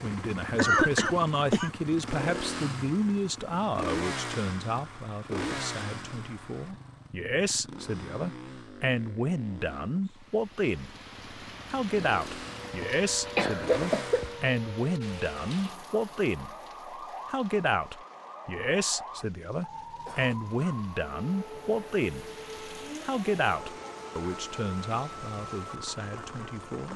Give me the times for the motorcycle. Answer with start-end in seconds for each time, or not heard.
0.0-14.4.